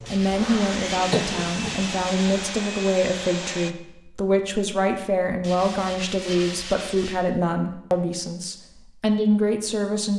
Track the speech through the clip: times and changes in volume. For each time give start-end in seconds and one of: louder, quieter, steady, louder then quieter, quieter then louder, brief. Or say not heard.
0.1-10.1 steady.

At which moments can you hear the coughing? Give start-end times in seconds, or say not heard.
1.1-1.9.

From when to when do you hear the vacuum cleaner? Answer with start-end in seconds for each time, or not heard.
0.0-3.8.